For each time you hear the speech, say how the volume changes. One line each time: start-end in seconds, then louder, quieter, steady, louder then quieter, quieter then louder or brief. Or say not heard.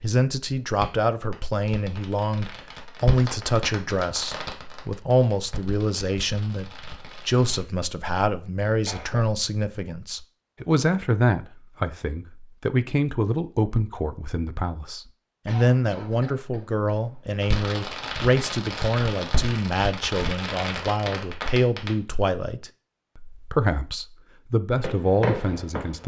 0.0-26.0 steady.